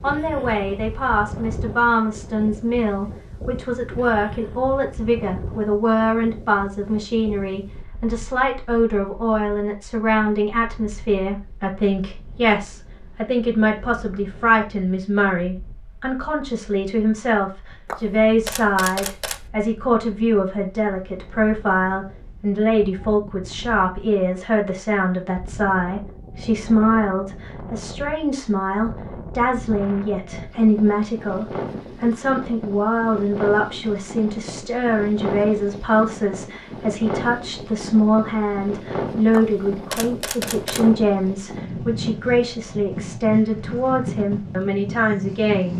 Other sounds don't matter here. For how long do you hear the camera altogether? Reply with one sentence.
You can hear the camera for 3 seconds altogether.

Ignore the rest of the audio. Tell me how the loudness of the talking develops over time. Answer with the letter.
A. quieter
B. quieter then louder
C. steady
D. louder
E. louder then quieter
C.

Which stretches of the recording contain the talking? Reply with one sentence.
You can hear the talking from 0.0 to 45.7 s.